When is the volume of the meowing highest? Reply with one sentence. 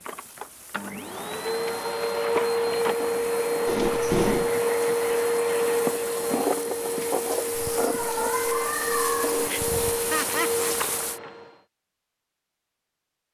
The volume of the meowing peaks at 4 seconds.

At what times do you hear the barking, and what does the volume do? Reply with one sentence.
You can't hear the barking here.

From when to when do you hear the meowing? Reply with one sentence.
You can hear the meowing from 3.6 to 4.5 s and from 7.5 to 9.5 s.